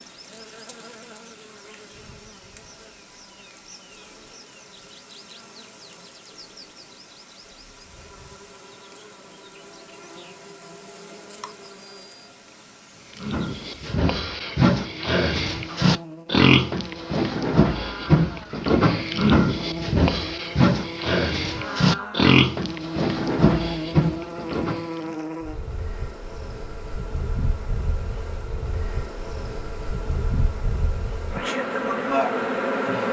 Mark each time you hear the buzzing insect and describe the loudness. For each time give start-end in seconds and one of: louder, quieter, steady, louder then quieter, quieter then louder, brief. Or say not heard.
0.0-33.0 louder.